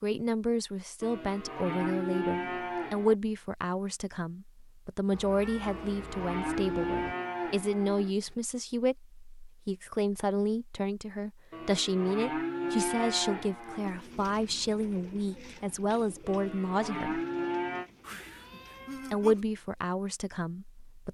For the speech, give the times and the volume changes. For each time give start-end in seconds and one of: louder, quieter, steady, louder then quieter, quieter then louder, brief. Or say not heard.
0.0-17.2 steady
19.1-21.0 brief.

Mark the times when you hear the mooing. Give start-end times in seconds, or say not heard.
1.0-3.1, 5.7-8.2, 11.5-14.0, 16.2-17.9.